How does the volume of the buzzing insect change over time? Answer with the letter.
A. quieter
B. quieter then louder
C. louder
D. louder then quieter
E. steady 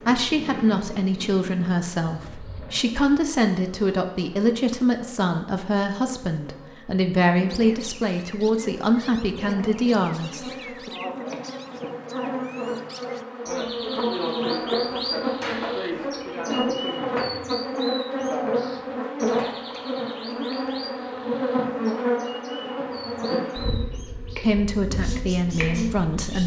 C.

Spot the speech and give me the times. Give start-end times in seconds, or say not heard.
0.1-10.9, 24.4-26.4.